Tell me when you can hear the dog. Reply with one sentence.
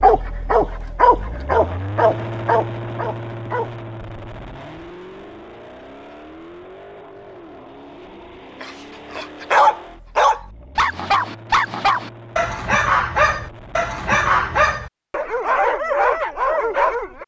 You can hear the dog from 0.0 to 3.8 s and from 8.6 to 17.2 s.